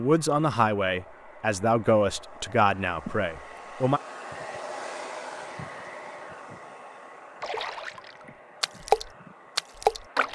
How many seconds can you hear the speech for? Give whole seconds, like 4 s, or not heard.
4 s.